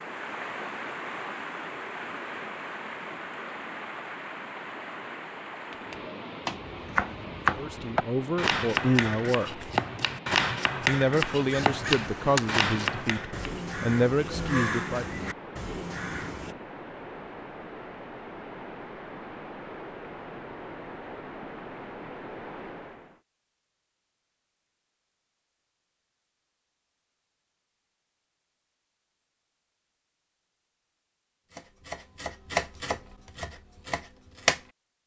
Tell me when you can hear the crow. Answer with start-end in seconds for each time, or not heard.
11.4-16.6.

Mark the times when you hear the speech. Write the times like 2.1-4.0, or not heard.
7.5-9.7, 10.8-15.2.